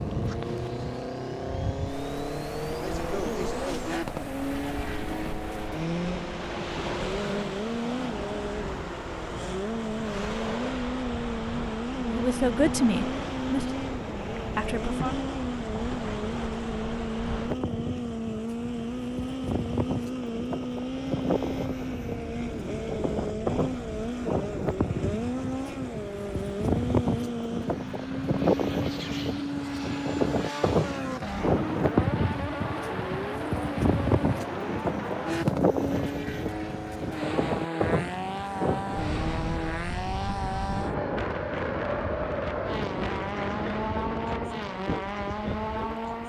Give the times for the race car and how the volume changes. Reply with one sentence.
The race car can be heard from 0.0 to 46.2 s, at a steady volume.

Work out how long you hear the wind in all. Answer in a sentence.
You can hear the wind for 46 seconds altogether.